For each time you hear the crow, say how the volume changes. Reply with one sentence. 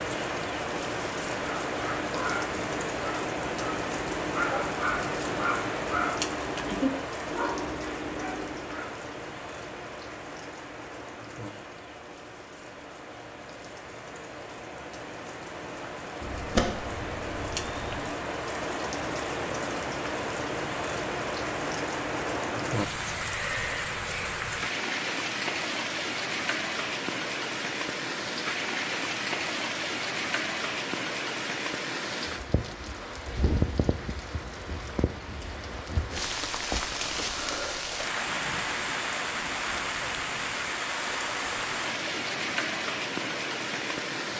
You can't hear the crow here.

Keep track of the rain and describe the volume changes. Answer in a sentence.
The loudness of the rain goes down, then up.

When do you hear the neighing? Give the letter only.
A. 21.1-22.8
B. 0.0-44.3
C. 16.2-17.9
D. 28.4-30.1
C.